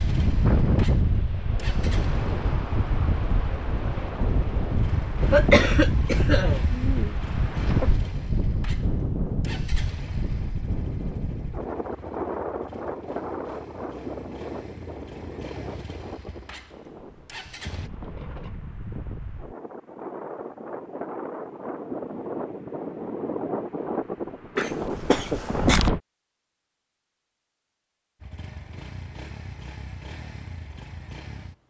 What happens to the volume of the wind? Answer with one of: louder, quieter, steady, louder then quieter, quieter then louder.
quieter then louder.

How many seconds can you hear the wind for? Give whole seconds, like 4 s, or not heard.
26 s.